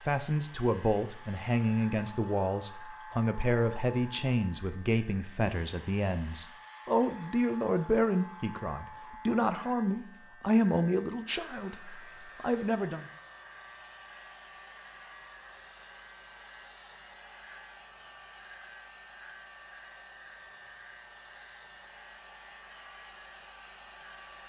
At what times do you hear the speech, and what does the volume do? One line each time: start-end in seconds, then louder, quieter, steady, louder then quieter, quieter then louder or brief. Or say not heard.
0.0-13.1 steady.